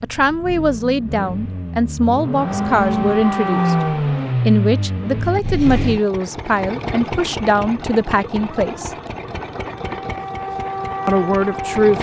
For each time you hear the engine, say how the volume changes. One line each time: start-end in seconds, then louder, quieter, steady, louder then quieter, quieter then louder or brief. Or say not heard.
0.0-11.9 louder then quieter.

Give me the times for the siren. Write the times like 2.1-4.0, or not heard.
2.4-4.3, 8.4-11.9.